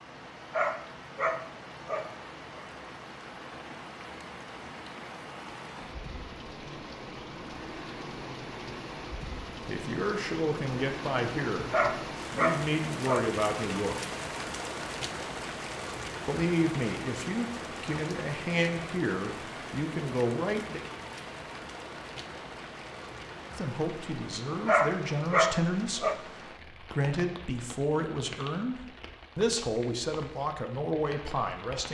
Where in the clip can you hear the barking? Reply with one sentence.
The barking can be heard from 0.5 to 2.7 s, from 11.7 to 13.3 s and from 24.6 to 26.2 s.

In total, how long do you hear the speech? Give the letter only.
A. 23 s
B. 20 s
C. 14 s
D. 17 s
D.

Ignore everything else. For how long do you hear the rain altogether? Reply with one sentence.
The rain can be heard for 32 seconds in total.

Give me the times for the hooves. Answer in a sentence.
The hooves can't be heard in this clip.